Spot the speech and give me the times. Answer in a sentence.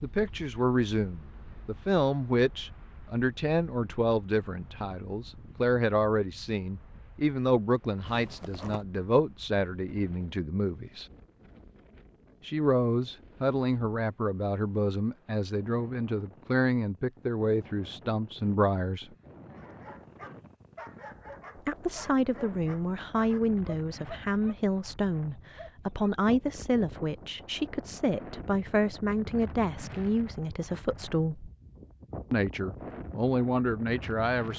The speech can be heard from 0.0 to 11.1 s, from 12.4 to 19.1 s, from 21.6 to 31.5 s and from 32.3 to 34.5 s.